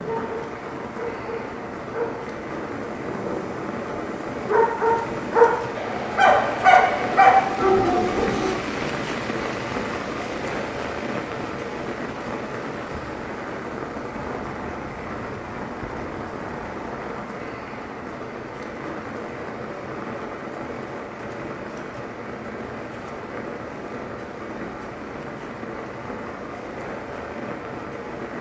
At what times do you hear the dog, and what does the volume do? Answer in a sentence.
You can hear the dog from 0.0 to 8.5 s, getting louder.